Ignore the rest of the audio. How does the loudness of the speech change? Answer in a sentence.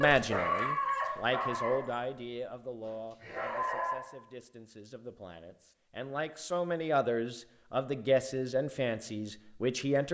The loudness of the speech goes down, then up.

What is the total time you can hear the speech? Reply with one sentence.
You can hear the speech for 10 seconds altogether.